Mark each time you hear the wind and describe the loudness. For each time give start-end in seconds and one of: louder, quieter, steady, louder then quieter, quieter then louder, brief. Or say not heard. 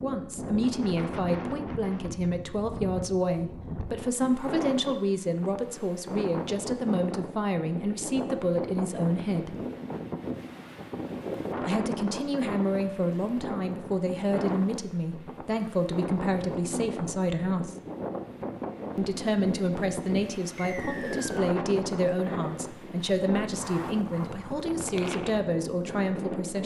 0.0-26.6 steady.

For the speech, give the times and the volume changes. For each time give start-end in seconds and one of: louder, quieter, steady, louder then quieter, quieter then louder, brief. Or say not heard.
0.0-9.6 steady
11.7-17.8 steady
18.9-26.6 steady.